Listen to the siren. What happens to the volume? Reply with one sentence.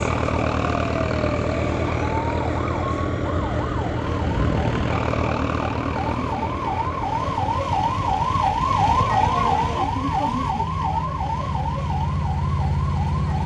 The volume of the siren goes up, then down.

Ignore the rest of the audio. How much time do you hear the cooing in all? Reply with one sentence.
You can't hear the cooing here.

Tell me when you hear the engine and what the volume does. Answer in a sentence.
You can hear the engine from 0.0 to 13.4 s, getting quieter then louder.